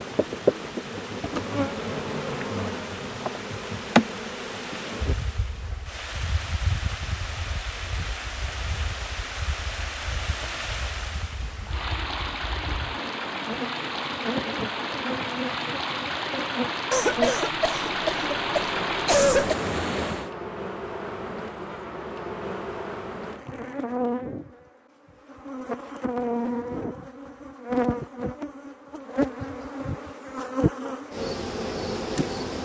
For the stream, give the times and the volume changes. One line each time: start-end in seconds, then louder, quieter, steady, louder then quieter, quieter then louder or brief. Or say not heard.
0.0-20.3 louder.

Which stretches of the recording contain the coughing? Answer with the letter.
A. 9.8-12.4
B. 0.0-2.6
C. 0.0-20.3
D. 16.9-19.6
D.